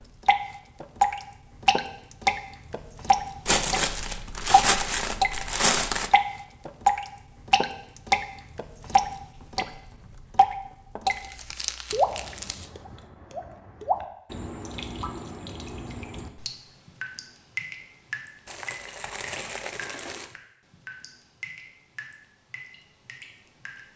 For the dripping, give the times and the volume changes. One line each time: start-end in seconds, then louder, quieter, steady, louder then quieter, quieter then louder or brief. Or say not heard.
0.2-5.3 quieter then louder
6.1-11.2 quieter then louder
11.9-23.9 quieter.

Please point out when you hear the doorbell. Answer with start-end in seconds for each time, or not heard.
not heard.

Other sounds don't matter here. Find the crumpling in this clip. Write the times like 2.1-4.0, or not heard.
3.5-6.1, 11.1-12.7, 18.4-20.2.